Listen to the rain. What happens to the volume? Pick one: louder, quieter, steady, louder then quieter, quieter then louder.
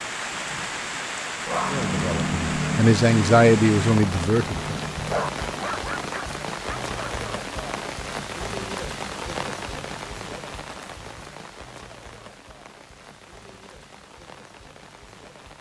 quieter.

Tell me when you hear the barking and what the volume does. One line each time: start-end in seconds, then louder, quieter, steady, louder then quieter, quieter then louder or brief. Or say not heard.
1.4-7.2 quieter.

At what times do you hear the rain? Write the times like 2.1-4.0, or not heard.
0.0-15.5.